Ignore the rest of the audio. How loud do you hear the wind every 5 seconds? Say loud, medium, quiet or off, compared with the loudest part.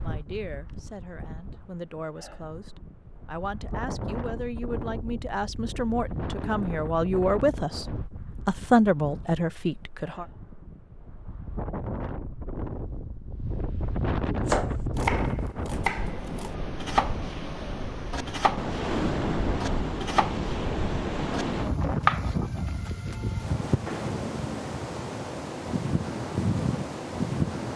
medium, medium, medium, loud, loud, loud.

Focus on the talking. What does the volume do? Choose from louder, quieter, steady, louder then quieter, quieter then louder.
louder.